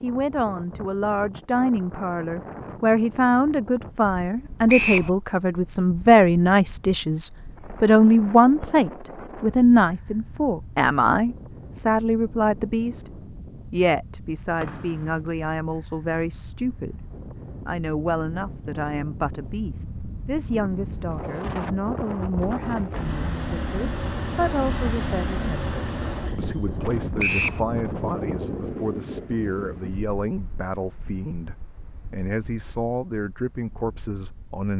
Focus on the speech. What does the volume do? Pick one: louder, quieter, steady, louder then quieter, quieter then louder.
quieter.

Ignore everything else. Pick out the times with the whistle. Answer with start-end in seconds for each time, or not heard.
4.7-5.1, 14.6-15.1, 27.1-27.6.